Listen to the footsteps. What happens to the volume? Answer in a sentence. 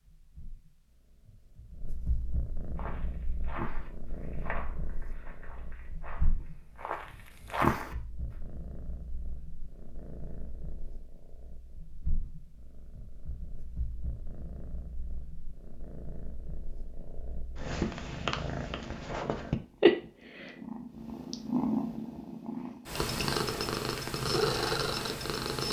The volume of the footsteps goes down, then up.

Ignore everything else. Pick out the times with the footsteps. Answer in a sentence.
You can hear the footsteps from 2.8 to 8.3 s.